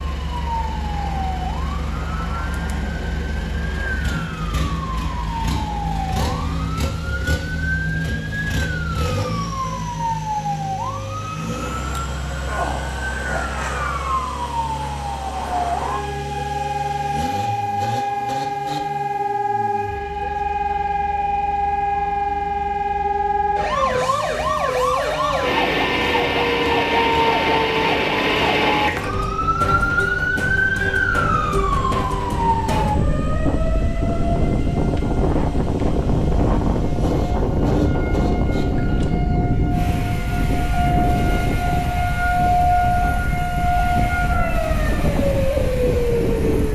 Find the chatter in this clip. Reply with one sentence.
The chatter can't be heard in this clip.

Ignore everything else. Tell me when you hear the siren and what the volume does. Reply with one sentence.
You can hear the siren from 0.1 to 46.7 s, getting louder.